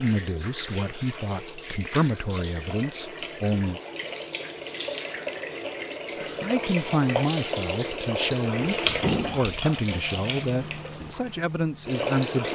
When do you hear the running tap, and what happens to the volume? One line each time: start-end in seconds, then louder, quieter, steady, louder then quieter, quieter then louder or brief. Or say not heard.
0.0-12.5 louder then quieter.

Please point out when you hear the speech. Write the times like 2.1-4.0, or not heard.
0.0-3.8, 6.4-12.5.